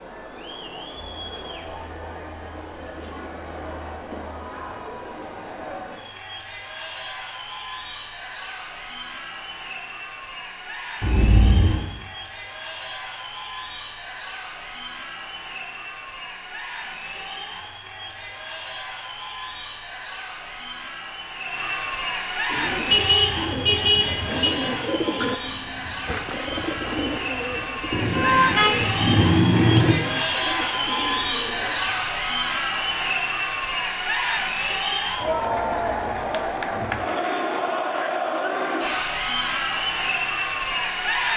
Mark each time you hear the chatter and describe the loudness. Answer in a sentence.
You can hear the chatter from 0.0 to 41.3 s, getting louder.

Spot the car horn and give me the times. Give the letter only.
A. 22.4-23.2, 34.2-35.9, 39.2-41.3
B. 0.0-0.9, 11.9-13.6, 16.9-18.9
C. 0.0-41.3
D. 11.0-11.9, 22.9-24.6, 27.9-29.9
D.